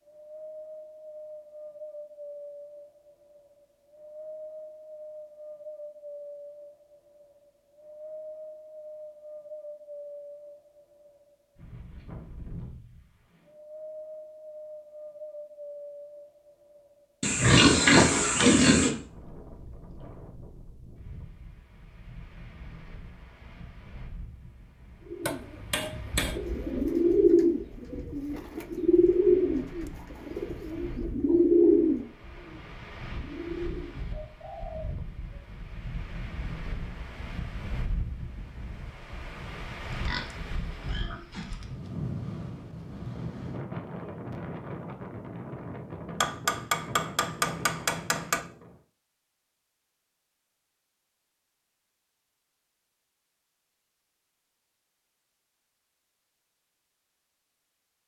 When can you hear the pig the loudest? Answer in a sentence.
The loudest moment of the pig is at 18 seconds.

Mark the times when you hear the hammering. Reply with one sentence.
You can hear the hammering from 25.2 to 26.4 s and from 46.2 to 48.4 s.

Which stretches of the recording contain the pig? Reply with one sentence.
The pig can be heard from 17.2 to 18.9 s and from 39.9 to 41.6 s.